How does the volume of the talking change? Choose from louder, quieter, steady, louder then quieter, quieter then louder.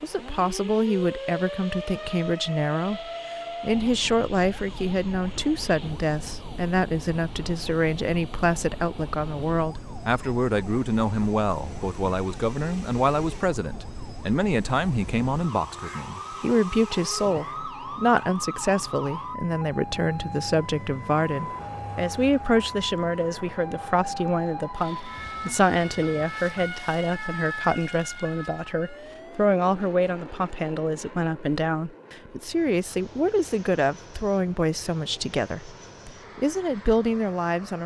steady.